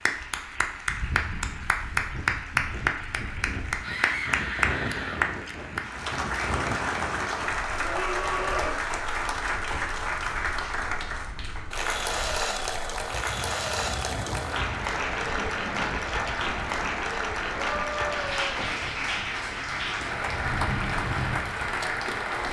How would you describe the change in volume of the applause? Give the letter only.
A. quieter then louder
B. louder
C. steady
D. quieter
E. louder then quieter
C.